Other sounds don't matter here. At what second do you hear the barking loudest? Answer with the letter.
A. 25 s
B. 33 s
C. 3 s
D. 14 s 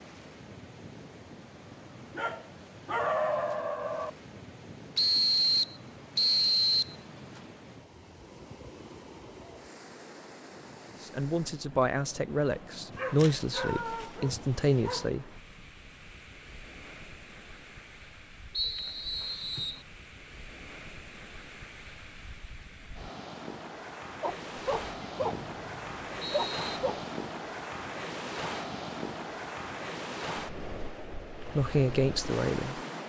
C.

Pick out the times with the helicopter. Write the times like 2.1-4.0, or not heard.
not heard.